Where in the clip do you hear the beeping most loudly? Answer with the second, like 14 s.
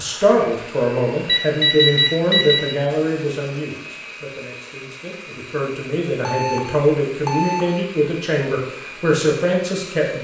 2 s.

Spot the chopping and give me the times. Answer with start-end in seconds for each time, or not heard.
not heard.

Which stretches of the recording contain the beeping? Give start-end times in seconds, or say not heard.
1.2-2.8, 6.2-7.7.